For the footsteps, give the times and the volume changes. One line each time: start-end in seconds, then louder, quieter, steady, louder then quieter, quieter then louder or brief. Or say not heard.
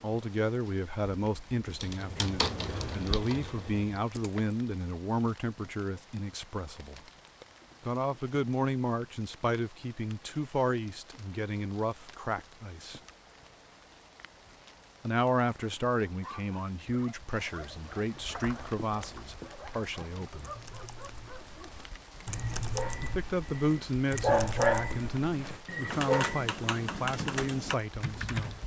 not heard.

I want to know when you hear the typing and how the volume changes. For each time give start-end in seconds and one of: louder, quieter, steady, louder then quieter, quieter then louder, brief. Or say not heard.
1.6-4.5 brief
18.1-28.6 louder.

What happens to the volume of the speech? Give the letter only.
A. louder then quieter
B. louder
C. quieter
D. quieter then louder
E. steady
E.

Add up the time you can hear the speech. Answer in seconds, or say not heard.
23 s.